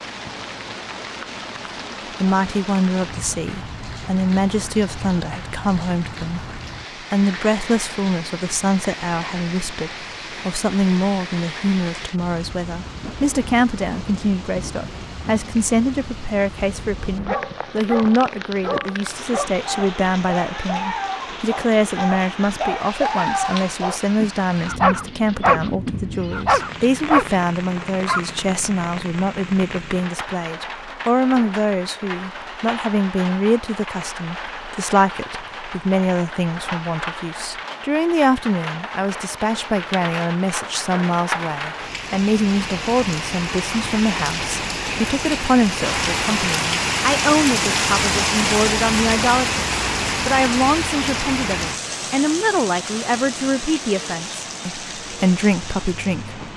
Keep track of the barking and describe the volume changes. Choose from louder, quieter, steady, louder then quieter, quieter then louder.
louder.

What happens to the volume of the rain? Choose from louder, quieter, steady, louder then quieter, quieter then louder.
louder.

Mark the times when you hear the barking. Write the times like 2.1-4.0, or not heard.
17.1-28.4.